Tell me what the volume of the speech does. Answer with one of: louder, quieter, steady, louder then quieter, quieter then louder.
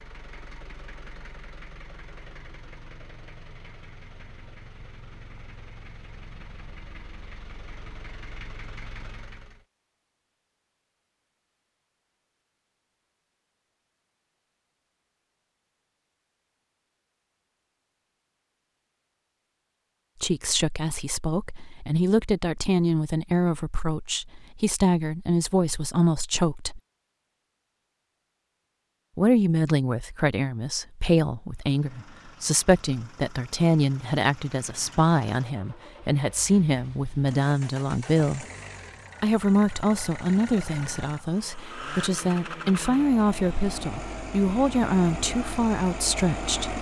steady.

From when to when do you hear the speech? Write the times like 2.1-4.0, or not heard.
20.2-26.8, 29.1-38.5, 39.2-46.7.